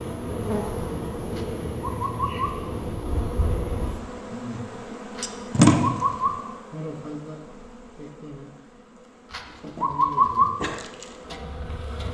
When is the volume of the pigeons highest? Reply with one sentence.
The loudest moment of the pigeons is at 10 seconds.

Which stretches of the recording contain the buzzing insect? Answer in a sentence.
The buzzing insect can be heard from 0.0 to 12.1 s.